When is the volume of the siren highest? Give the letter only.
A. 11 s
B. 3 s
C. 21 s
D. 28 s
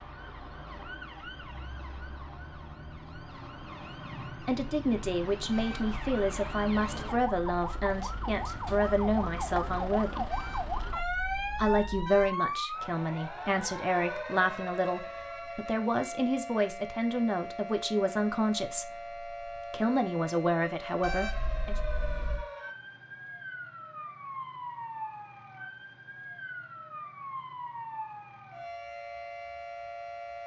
A.